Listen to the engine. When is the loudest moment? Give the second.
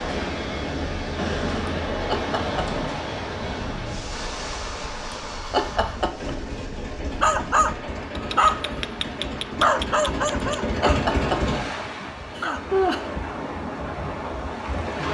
11 s.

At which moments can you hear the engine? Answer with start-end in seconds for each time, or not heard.
4.1-11.7.